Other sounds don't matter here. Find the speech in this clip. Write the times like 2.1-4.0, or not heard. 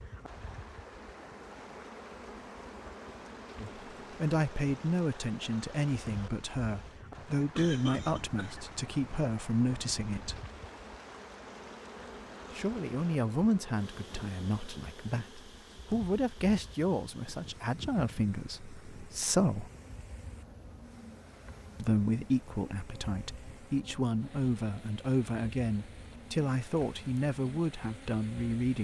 3.6-10.4, 12.6-19.7, 21.8-28.7.